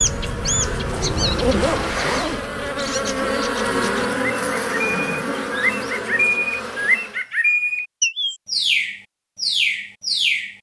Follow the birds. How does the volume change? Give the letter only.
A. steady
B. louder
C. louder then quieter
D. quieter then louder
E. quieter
D.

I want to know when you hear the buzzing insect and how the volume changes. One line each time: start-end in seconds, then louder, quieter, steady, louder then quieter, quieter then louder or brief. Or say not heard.
0.0-7.2 louder then quieter.